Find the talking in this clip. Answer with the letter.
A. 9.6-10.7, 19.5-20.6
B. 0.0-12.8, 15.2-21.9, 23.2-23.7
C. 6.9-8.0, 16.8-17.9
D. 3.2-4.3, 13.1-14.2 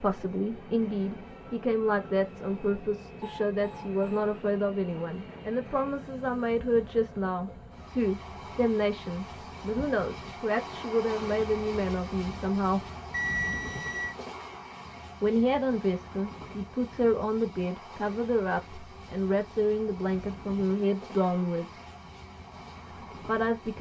B.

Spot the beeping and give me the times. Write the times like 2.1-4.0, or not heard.
3.2-4.3, 13.1-14.2.